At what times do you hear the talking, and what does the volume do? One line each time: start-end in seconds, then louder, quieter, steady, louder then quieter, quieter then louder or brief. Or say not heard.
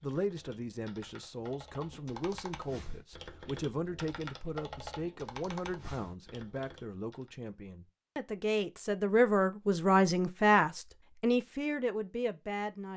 0.0-12.9 louder.